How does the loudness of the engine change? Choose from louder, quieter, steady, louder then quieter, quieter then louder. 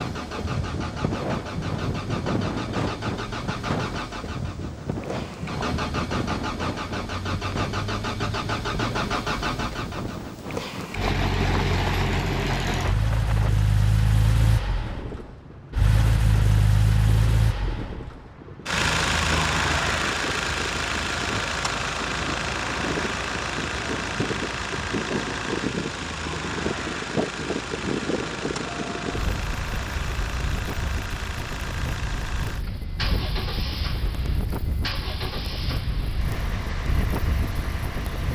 louder then quieter.